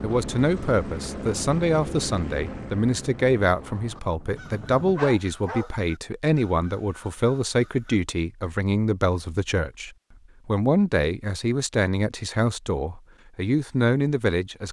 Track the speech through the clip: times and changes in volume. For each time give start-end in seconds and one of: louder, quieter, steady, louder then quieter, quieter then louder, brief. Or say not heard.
0.0-14.6 steady.